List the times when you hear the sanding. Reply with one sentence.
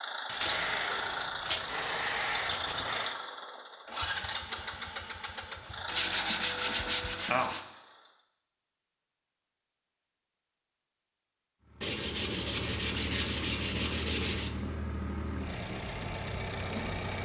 The sanding can be heard from 0.2 to 3.2 s, from 5.8 to 7.6 s and from 11.8 to 14.5 s.